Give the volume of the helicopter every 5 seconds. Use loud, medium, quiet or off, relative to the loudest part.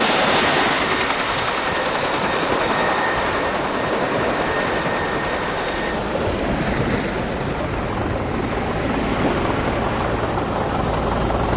loud, medium, loud.